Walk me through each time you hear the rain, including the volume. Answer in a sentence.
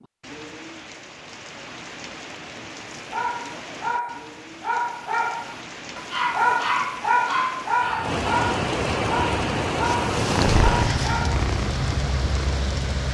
The rain can be heard from 0.0 to 13.0 s, getting louder.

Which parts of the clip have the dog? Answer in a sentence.
You can hear the dog from 3.1 to 11.4 s.